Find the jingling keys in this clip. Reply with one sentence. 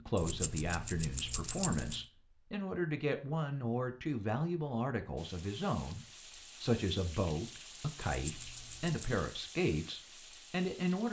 You can hear the jingling keys from 0.1 to 2.0 s and from 8.2 to 9.0 s.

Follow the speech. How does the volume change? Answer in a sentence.
The volume of the speech stays about the same.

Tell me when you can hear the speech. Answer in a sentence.
The speech can be heard from 0.0 to 11.0 s.